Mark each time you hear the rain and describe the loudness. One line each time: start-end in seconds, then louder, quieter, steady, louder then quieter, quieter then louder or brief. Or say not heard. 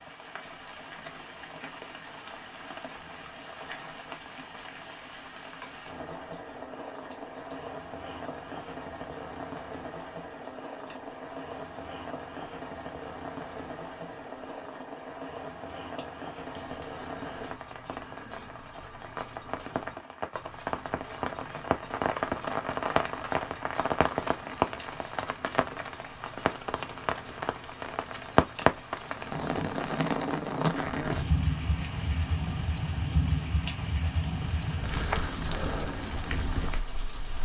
0.0-37.4 louder.